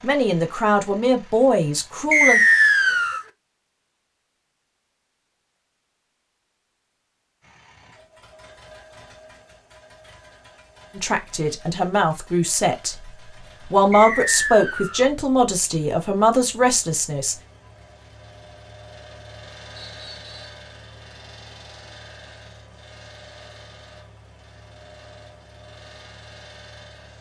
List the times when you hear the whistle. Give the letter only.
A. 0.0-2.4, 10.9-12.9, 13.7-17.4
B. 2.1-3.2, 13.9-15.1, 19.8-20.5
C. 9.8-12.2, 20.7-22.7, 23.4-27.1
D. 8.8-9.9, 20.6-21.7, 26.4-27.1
B.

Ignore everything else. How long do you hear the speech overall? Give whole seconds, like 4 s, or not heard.
8 s.